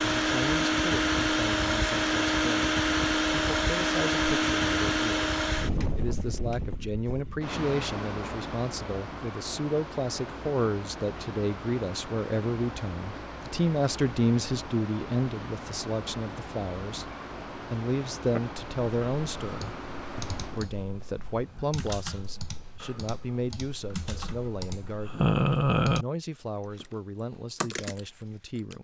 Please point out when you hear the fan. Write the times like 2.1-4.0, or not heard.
0.0-20.7.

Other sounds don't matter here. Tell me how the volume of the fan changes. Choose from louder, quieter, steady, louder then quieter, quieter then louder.
quieter.